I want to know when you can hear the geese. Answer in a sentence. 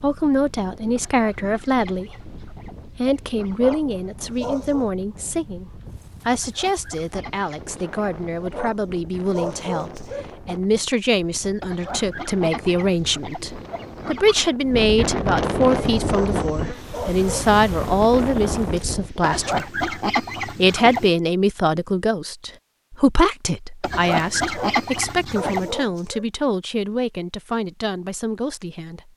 You can hear the geese from 0.9 to 3.8 s, from 6.3 to 8.6 s, from 11.6 to 14.6 s, from 19.2 to 21.1 s and from 23.8 to 25.8 s.